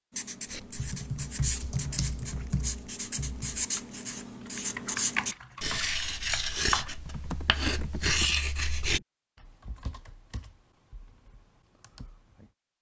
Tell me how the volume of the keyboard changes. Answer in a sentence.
The volume of the keyboard goes down.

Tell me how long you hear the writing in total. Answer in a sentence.
You can hear the writing for 9 seconds altogether.